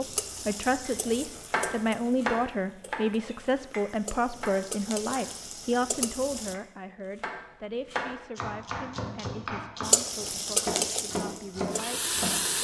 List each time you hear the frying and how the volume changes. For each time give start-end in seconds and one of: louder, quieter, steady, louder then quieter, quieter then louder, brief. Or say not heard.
0.0-6.5 quieter then louder
9.8-12.5 brief.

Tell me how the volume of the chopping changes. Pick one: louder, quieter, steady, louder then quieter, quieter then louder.
quieter then louder.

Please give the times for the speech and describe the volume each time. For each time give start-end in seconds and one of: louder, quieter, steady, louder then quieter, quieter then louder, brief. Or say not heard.
0.0-12.5 quieter.